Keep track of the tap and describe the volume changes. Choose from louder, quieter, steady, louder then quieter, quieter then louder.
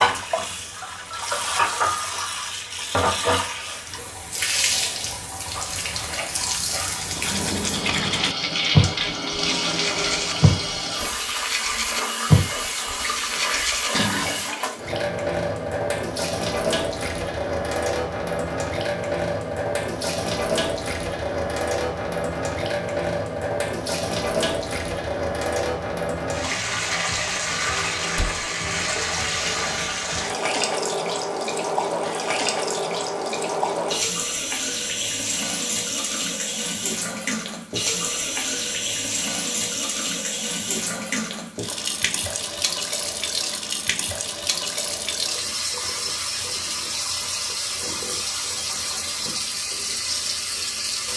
steady.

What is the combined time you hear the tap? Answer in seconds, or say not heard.
51 s.